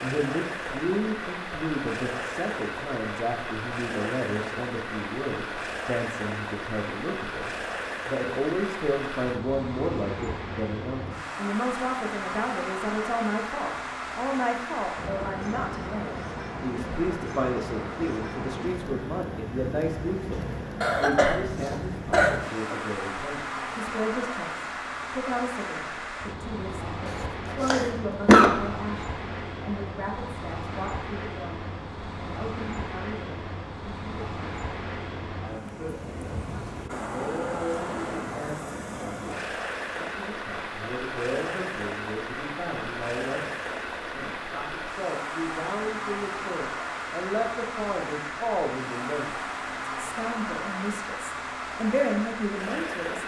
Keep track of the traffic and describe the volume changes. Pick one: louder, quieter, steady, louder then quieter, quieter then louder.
steady.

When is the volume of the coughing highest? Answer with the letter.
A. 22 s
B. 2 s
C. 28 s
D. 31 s
C.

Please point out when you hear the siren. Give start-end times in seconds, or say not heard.
not heard.